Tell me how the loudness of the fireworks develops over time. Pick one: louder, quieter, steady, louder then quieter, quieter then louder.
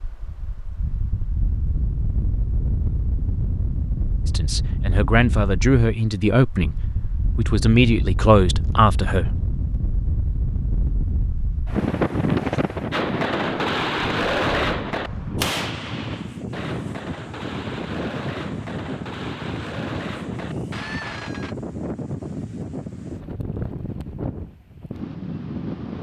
quieter.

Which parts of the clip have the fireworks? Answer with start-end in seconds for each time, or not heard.
12.9-21.6.